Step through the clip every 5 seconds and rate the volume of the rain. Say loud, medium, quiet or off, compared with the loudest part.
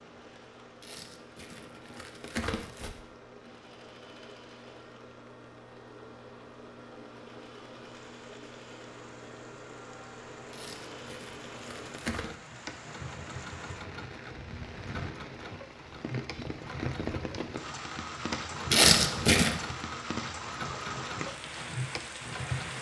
quiet, quiet, medium, loud, loud.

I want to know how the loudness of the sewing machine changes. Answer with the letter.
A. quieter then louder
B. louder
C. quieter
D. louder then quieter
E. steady
B.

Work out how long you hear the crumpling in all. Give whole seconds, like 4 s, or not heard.
5 s.